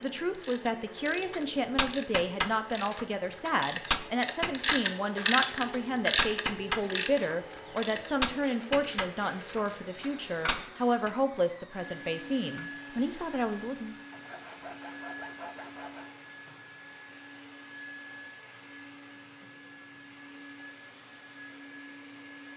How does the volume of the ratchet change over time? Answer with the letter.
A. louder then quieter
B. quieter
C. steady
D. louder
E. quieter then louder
A.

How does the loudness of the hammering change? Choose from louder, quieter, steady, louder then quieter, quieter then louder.
quieter.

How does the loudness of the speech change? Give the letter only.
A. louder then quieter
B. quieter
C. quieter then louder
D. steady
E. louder
D.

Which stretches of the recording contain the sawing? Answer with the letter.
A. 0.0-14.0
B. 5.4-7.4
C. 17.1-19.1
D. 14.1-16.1
D.